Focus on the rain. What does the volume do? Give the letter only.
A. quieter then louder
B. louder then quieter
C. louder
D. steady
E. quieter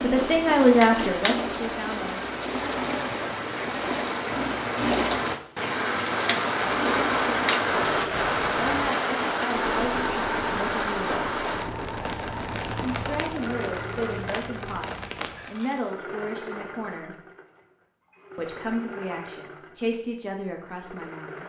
B.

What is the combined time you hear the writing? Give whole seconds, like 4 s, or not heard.
not heard.